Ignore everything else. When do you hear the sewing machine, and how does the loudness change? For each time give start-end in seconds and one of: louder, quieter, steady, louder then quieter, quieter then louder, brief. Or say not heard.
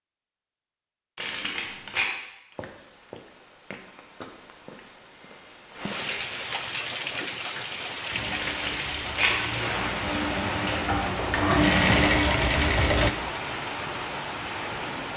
8.1-13.1 louder.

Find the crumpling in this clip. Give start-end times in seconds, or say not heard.
1.1-2.0, 8.3-10.0.